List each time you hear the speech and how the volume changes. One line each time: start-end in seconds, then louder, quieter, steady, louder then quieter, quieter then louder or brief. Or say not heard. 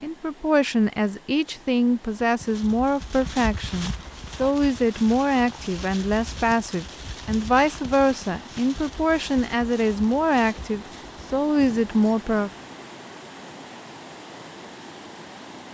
0.0-12.5 steady.